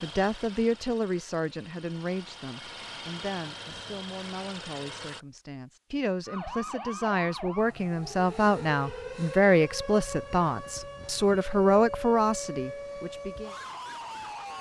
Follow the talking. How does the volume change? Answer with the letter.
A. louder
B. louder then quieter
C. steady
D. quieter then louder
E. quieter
D.